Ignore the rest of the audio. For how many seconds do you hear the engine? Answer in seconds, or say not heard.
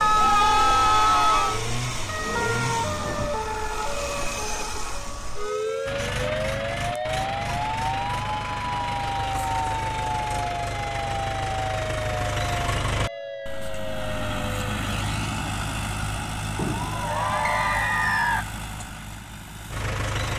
20 s.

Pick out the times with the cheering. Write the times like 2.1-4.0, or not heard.
0.0-1.6, 16.6-18.4.